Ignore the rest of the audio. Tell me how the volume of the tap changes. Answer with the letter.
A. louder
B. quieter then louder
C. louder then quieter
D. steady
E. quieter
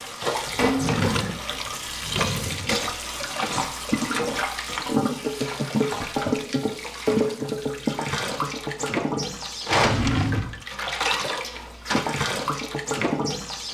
D.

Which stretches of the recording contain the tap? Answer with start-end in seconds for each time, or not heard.
0.0-13.6.